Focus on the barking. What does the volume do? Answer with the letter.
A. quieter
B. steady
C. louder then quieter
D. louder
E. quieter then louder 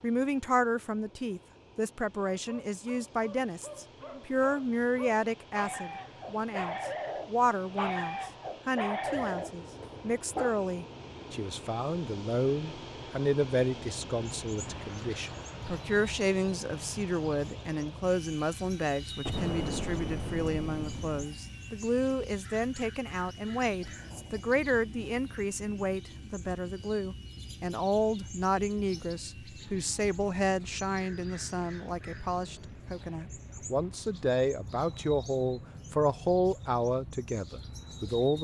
D.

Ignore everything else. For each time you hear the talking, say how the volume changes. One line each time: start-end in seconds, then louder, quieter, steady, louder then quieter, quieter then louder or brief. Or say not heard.
0.0-38.3 steady.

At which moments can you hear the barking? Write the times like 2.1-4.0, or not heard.
2.4-10.6.